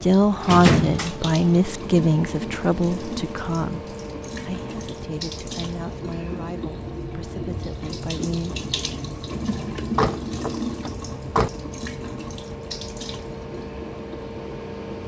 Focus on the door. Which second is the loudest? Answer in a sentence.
The volume of the door peaks at 1 second.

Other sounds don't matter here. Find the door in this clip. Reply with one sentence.
The door can be heard from 0.4 to 1.1 s and from 9.8 to 11.5 s.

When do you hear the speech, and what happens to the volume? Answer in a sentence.
You can hear the speech from 0.0 to 8.6 s, getting quieter.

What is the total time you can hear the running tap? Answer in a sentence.
You can hear the running tap for 15 seconds altogether.